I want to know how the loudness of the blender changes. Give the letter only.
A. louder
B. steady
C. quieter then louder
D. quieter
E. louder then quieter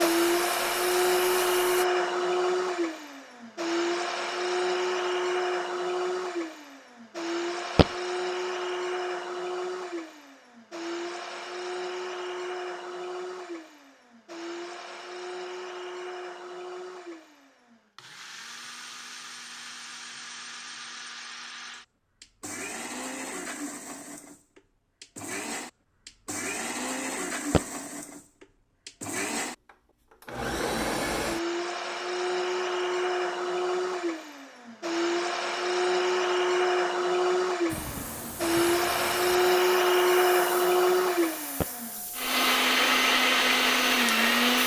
C.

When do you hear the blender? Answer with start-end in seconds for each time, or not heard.
0.0-44.6.